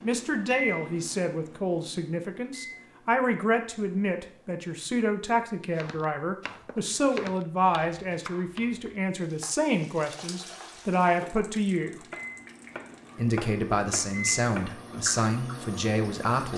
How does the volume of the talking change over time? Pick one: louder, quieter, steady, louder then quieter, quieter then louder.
steady.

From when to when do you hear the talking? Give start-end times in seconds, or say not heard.
0.0-12.1, 13.2-16.5.